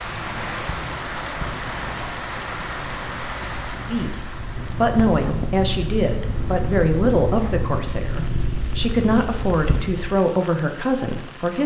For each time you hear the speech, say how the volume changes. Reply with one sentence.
You can hear the speech from 3.9 to 11.6 s, at a steady volume.